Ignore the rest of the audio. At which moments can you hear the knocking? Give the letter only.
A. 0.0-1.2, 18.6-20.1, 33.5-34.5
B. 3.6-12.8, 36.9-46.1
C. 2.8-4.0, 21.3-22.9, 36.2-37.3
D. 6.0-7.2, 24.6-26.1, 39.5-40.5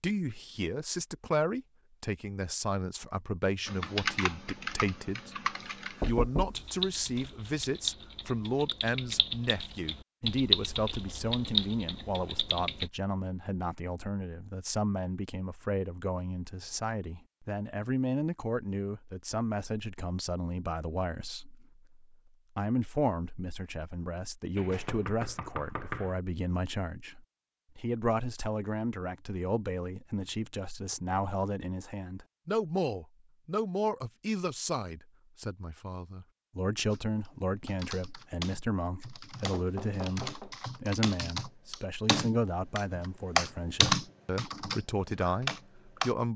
D.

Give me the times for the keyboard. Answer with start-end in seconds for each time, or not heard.
3.6-12.8, 36.9-46.1.